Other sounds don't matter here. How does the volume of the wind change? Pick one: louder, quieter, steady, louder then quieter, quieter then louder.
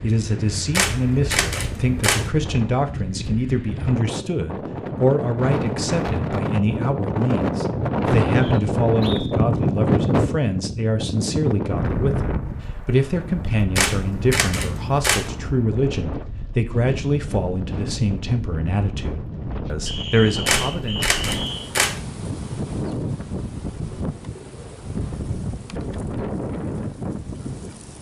louder then quieter.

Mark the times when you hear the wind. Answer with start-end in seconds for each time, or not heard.
0.0-27.9.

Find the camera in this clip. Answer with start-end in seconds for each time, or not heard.
0.7-2.3, 13.8-15.3, 20.4-22.0.